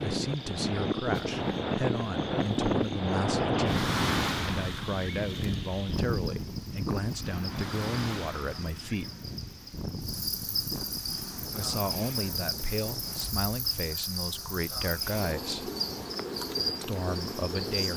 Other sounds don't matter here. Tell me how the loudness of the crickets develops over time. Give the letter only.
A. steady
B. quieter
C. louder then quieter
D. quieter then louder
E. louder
E.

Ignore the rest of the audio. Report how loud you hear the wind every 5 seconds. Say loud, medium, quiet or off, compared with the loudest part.
loud, medium, quiet, quiet.